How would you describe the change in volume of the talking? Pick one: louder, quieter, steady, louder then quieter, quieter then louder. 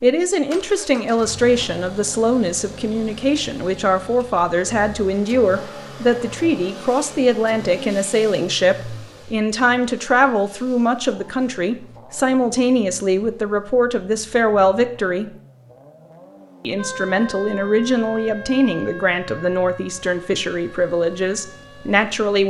steady.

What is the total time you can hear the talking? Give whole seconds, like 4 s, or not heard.
21 s.